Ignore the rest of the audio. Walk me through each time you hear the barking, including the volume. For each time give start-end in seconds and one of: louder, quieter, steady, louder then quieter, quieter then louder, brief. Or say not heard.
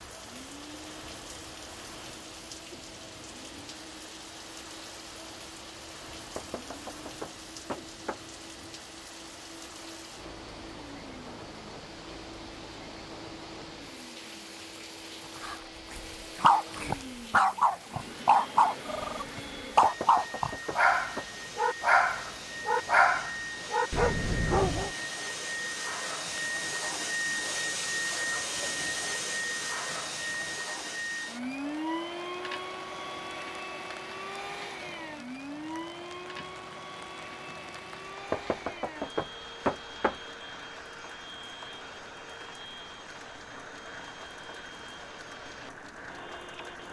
15.4-24.9 steady.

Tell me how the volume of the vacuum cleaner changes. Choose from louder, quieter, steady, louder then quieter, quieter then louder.
louder then quieter.